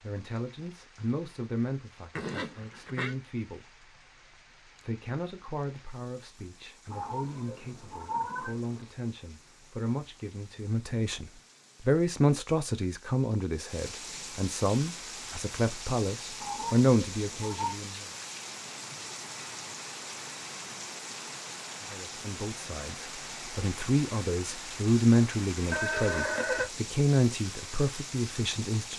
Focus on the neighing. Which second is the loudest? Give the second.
26 s.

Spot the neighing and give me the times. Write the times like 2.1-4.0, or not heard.
2.1-3.1, 25.7-26.7.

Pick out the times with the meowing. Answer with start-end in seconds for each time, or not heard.
6.9-8.8, 16.4-17.8.